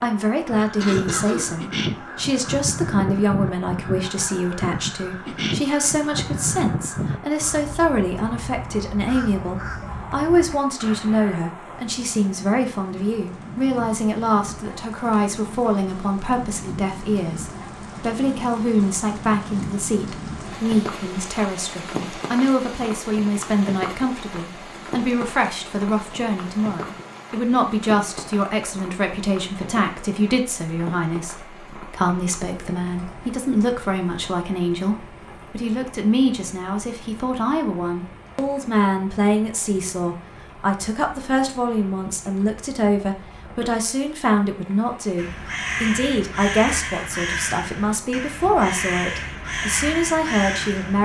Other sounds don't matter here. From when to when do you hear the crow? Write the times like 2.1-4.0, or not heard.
0.5-11.4, 45.1-51.0.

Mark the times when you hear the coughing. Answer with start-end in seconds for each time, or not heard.
0.8-1.6.